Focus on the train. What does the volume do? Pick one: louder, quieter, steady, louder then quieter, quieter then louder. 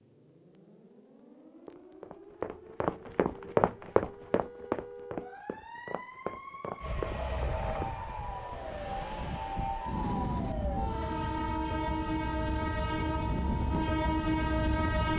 louder.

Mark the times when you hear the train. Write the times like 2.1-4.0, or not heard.
6.8-15.1.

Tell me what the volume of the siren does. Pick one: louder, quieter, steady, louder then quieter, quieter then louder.
louder.